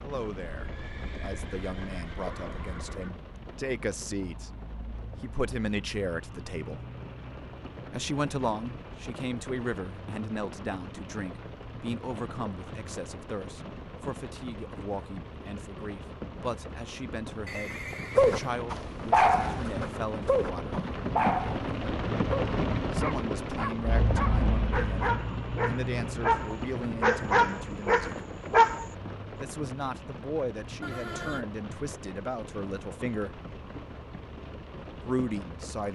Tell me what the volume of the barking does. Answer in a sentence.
The loudness of the barking goes down, then up.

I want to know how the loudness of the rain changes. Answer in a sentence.
The volume of the rain goes up, then down.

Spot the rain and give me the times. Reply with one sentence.
You can hear the rain from 0.0 to 35.9 s.